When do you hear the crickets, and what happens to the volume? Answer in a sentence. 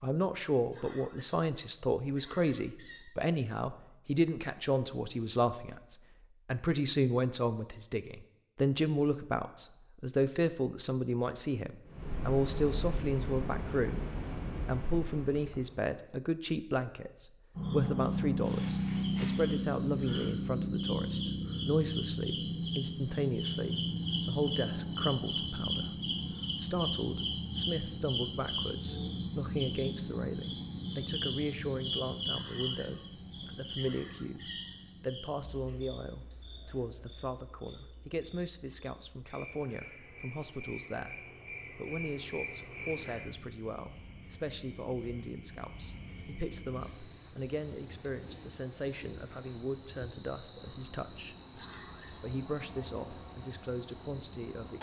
The crickets can be heard from 11.8 to 54.7 s, getting quieter then louder.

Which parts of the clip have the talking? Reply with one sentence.
You can hear the talking from 0.0 to 54.7 s.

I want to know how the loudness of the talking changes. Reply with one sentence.
The volume of the talking goes down.